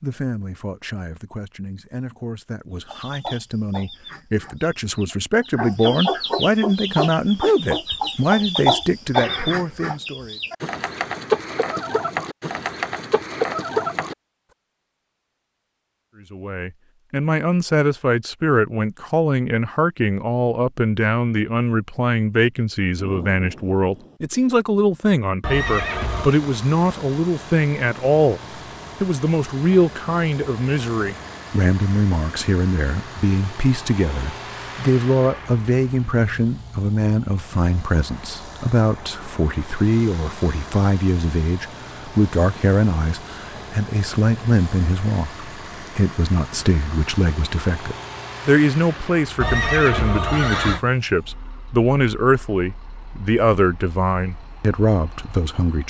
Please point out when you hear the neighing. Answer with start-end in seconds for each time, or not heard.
9.1-9.9, 25.4-26.4, 49.4-50.8.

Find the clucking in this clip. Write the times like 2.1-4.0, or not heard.
2.9-14.2.